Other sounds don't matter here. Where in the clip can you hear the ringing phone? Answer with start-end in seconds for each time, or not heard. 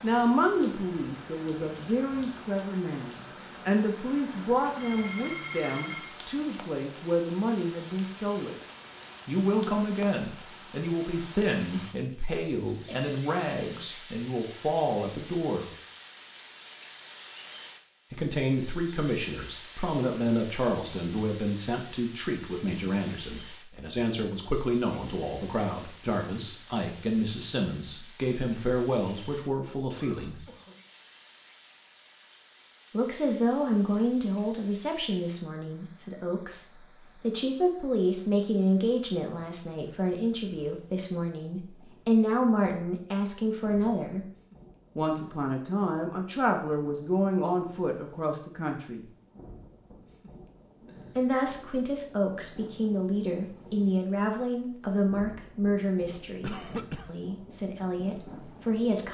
4.0-6.1.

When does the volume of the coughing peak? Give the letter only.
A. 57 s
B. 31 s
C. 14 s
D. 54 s
A.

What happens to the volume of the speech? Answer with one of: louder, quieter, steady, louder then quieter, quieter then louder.
steady.